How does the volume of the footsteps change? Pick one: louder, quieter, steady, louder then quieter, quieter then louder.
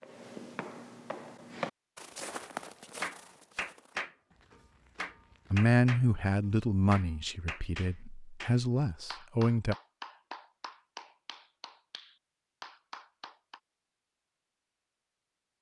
louder then quieter.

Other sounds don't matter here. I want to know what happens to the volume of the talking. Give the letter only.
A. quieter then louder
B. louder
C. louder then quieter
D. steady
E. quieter
A.